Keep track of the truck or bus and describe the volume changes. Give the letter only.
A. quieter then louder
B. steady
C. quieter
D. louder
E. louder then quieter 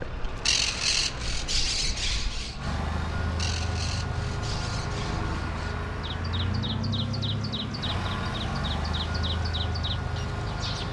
D.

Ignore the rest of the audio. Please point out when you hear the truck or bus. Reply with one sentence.
You can hear the truck or bus from 0.0 to 10.8 s.